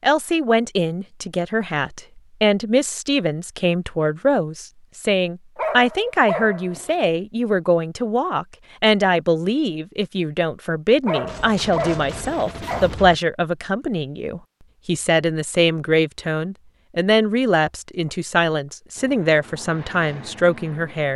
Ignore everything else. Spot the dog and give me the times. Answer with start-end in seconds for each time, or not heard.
5.5-7.0, 11.1-12.9.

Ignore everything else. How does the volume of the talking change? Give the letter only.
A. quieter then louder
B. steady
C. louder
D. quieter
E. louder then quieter
B.